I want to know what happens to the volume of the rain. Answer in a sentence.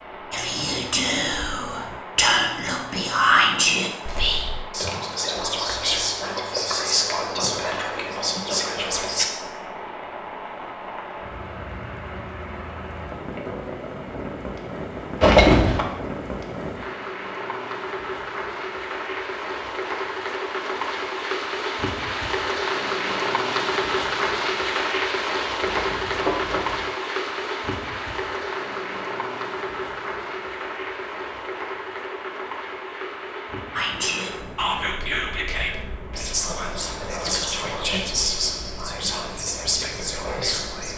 The loudness of the rain goes up, then down.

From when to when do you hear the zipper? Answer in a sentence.
The zipper can be heard from 15.2 to 15.8 s and from 25.6 to 26.9 s.